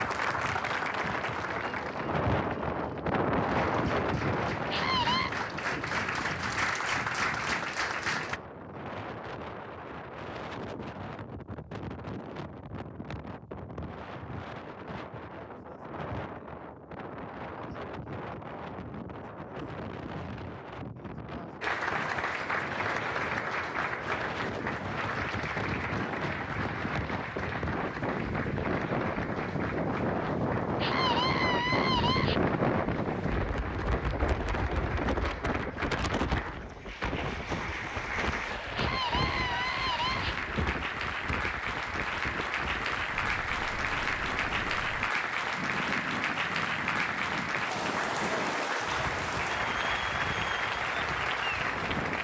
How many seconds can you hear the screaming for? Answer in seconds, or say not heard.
4 s.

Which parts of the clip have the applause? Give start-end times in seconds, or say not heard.
0.0-8.4, 21.6-52.1.